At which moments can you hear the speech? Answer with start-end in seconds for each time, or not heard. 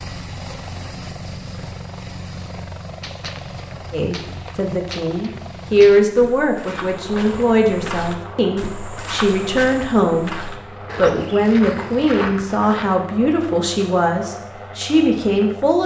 3.9-15.8.